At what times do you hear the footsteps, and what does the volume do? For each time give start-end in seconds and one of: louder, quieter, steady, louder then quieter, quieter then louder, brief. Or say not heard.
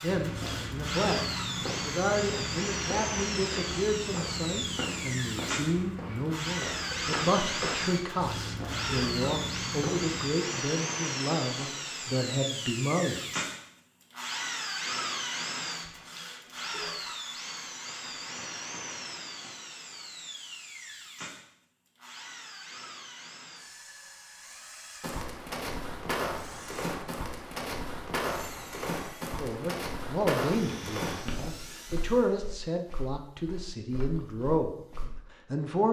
0.1-10.3 steady
25.0-35.1 quieter.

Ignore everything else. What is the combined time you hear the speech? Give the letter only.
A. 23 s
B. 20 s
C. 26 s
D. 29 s
B.